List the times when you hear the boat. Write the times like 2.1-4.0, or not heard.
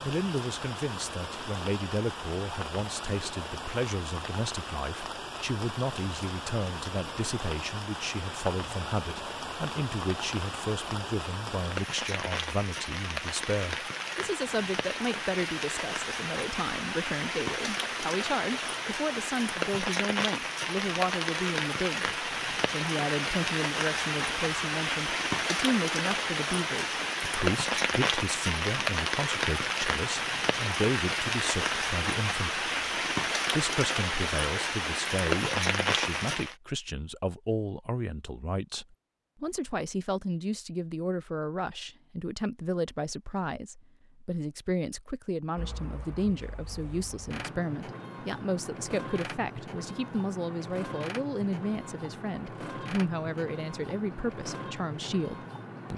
45.5-55.9.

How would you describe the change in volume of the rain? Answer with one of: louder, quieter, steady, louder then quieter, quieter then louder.
louder.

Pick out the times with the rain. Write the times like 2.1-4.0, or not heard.
0.0-36.5.